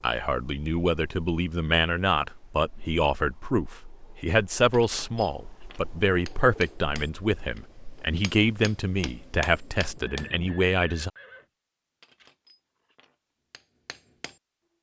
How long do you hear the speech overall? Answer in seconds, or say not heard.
11 s.